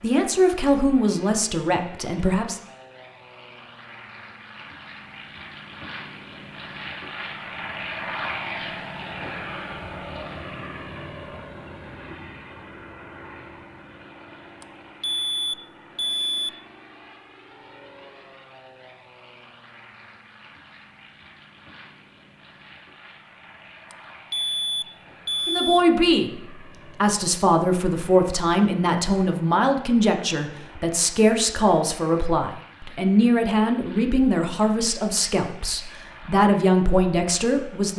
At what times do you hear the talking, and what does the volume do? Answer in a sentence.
The talking can be heard briefly from 0.0 to 2.6 s; and from 25.4 to 37.9 s, at a steady volume.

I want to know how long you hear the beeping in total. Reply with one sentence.
The beeping can be heard for 4 seconds in total.